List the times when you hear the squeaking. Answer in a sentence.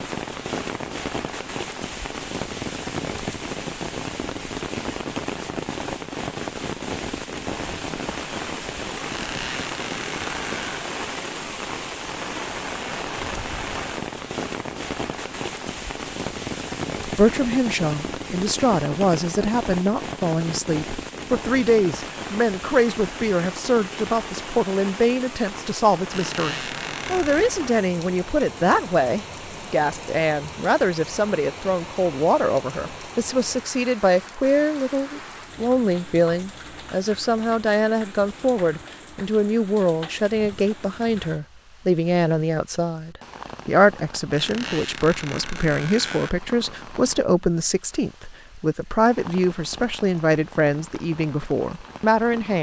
The squeaking can be heard from 9.1 to 10.8 s, from 26.1 to 27.5 s and from 44.3 to 46.3 s.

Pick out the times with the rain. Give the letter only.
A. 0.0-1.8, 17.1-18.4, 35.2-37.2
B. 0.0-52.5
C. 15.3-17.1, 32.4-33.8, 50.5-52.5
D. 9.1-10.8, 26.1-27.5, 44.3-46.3
B.